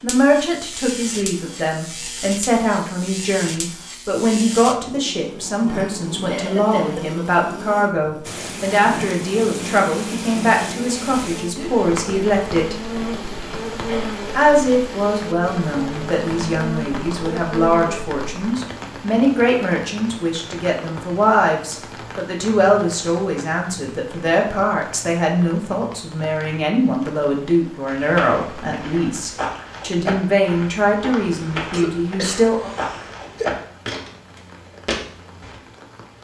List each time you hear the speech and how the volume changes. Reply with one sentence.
You can hear the speech from 0.0 to 12.9 s, at a steady volume; and from 14.3 to 32.7 s, at a steady volume.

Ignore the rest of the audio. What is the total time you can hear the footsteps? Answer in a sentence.
The footsteps can be heard for 8 seconds in total.